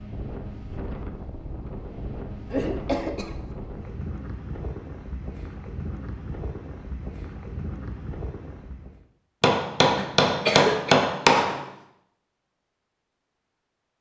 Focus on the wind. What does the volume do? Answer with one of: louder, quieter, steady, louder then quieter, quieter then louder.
steady.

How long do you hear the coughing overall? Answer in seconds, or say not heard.
2 s.